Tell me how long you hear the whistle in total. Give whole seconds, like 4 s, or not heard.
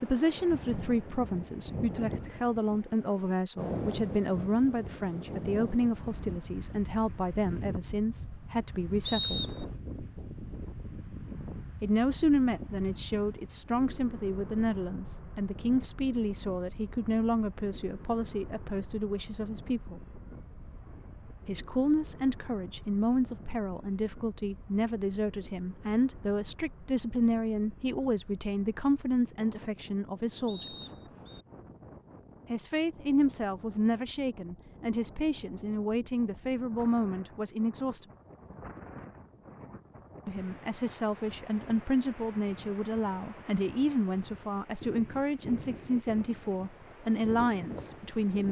2 s.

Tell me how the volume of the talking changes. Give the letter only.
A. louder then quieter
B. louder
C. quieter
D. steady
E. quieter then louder
D.